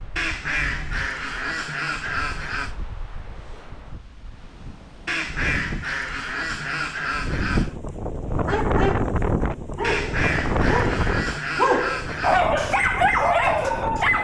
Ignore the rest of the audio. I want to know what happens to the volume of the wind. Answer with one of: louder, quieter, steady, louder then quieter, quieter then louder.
louder then quieter.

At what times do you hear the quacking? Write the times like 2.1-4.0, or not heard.
0.1-2.8, 5.0-7.8, 9.8-12.5.